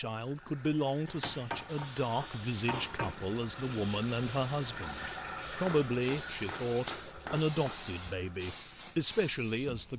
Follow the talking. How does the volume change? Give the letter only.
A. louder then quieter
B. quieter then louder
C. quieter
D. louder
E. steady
E.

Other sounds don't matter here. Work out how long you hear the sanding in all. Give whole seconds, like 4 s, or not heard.
not heard.